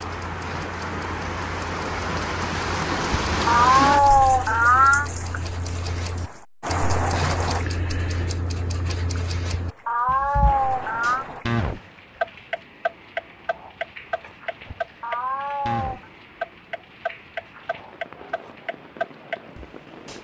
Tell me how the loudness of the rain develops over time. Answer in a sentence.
The loudness of the rain goes down.